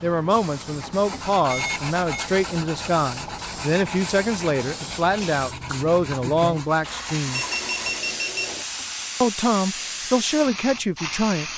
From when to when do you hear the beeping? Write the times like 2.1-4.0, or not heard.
1.5-2.2, 7.3-8.7.